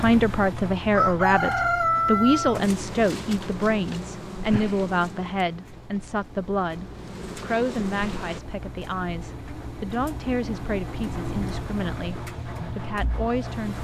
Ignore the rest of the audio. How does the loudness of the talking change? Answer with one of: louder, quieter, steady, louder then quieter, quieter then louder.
quieter.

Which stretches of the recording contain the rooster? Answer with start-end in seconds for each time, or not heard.
0.9-2.6.